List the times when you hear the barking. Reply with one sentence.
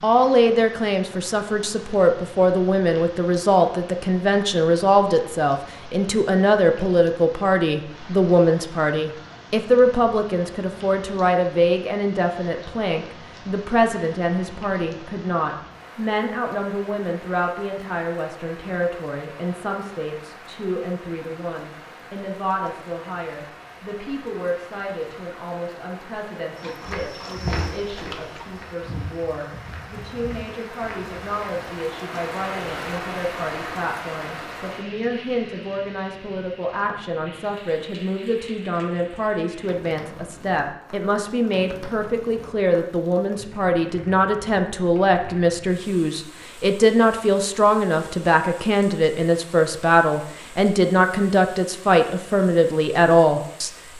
You can hear the barking from 26.6 to 28.4 s.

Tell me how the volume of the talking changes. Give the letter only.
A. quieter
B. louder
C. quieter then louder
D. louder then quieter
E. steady
C.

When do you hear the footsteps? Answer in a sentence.
The footsteps can be heard from 26.6 to 31.6 s.